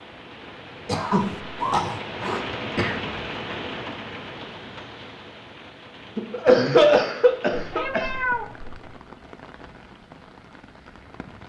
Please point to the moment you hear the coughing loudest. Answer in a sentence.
The loudest moment of the coughing is at 7 seconds.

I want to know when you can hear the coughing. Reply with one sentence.
You can hear the coughing from 0.8 to 3.0 s and from 6.2 to 8.1 s.